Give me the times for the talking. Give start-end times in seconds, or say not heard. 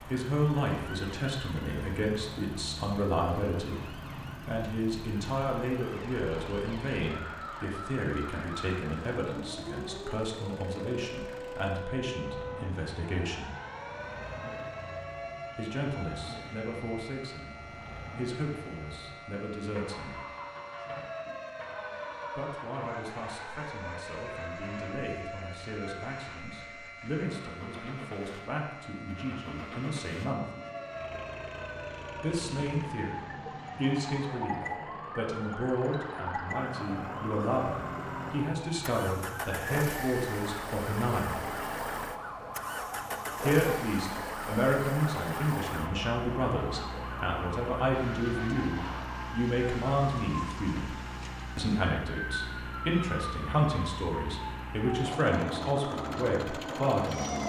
0.1-13.5, 15.6-20.1, 22.4-30.4, 32.1-41.4, 43.4-51.0, 51.5-57.4.